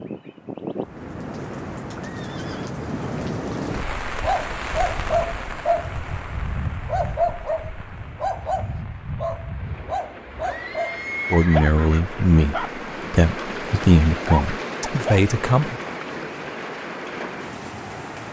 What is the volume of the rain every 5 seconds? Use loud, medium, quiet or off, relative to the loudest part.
loud, medium, loud, loud.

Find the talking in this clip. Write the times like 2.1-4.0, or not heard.
11.3-15.8.